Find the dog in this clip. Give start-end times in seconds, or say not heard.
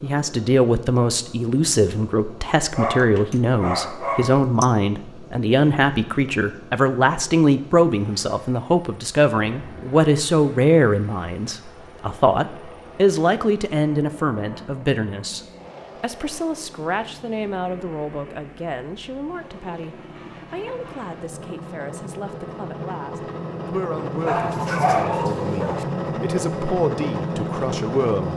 2.8-4.7, 24.2-25.9.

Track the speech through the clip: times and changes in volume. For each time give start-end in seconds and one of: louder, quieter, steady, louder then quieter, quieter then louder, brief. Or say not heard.
0.0-15.4 steady
16.0-28.3 quieter then louder.